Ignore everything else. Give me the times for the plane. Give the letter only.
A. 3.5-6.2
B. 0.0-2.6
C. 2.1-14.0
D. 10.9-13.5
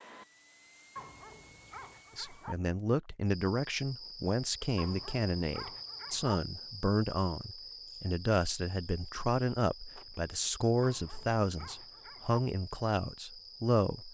B.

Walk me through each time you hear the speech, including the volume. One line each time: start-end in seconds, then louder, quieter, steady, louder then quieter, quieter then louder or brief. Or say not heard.
2.1-14.0 steady.